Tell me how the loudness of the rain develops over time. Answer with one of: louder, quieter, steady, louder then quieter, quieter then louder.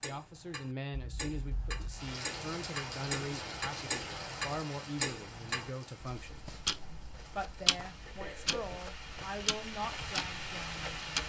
quieter then louder.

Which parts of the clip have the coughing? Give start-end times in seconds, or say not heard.
0.9-2.1, 8.1-8.8.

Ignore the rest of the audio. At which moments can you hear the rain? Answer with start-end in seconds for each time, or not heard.
1.9-11.2.